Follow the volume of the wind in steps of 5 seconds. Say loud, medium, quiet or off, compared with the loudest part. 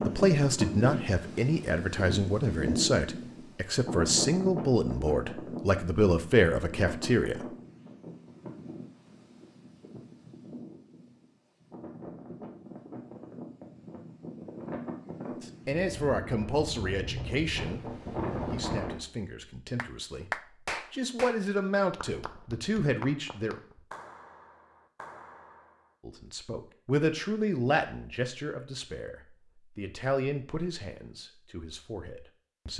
loud, medium, medium, loud, off, off, off.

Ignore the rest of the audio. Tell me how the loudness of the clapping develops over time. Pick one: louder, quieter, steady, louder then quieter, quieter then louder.
quieter.